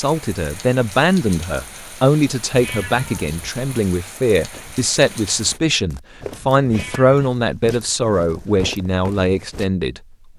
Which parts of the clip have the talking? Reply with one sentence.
You can hear the talking from 0.0 to 10.3 s.